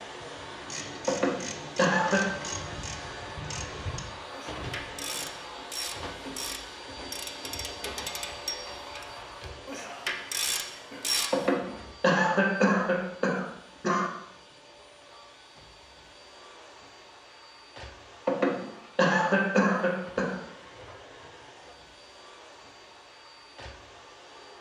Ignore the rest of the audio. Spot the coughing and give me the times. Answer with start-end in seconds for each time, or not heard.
1.1-2.2, 11.3-14.1, 18.2-20.4.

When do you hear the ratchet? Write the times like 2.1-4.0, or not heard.
0.6-11.5.